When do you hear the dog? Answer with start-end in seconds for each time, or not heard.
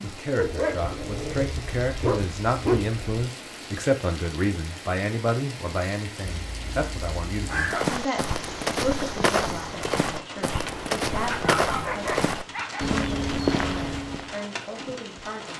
0.3-3.0, 6.2-7.8, 11.3-12.8.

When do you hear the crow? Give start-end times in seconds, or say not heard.
not heard.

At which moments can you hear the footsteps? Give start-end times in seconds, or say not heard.
7.5-14.3.